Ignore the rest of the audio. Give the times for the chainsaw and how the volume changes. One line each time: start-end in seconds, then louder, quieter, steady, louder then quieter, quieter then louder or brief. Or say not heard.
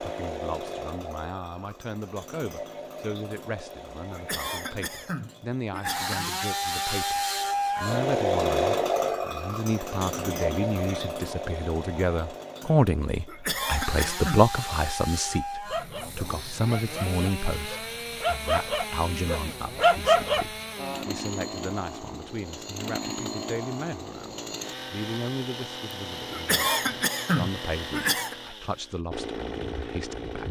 0.0-30.4 louder then quieter.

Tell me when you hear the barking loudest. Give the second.
20 s.